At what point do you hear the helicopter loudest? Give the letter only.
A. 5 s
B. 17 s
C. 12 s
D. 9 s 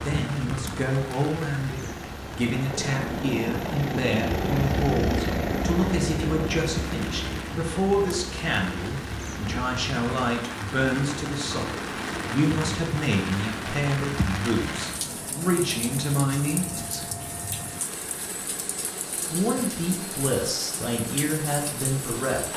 A.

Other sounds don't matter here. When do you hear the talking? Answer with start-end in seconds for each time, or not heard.
0.0-17.1, 19.2-22.5.